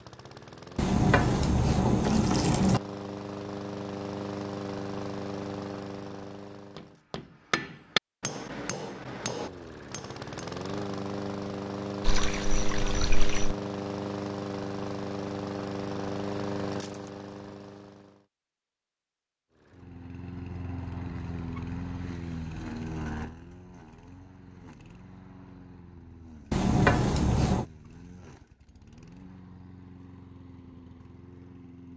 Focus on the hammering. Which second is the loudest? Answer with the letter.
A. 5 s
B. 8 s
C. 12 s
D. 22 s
B.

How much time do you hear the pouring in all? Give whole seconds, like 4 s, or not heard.
5 s.